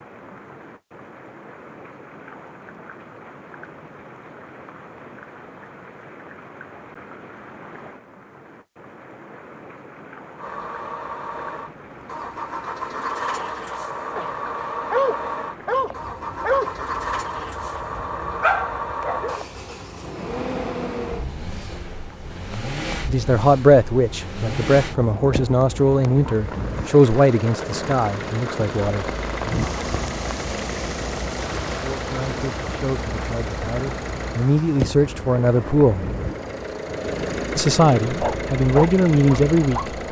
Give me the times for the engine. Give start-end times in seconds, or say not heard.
10.3-40.0.